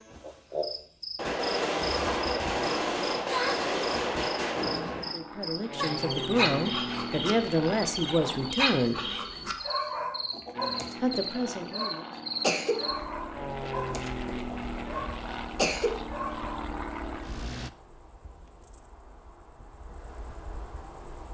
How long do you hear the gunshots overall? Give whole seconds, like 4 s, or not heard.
4 s.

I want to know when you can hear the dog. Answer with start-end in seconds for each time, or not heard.
5.8-16.6.